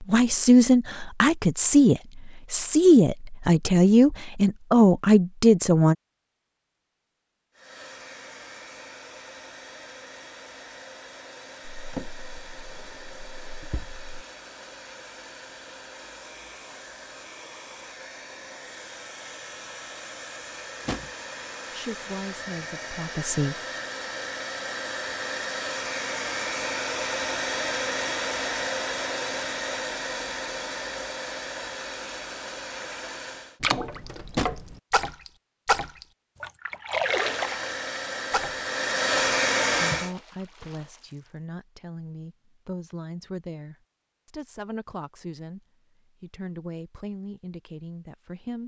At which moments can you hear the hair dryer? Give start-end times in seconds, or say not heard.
7.5-33.6, 37.0-40.1.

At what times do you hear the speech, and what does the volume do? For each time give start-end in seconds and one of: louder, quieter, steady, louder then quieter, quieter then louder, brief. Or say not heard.
0.0-6.0 steady
21.7-23.6 brief
39.9-48.6 steady.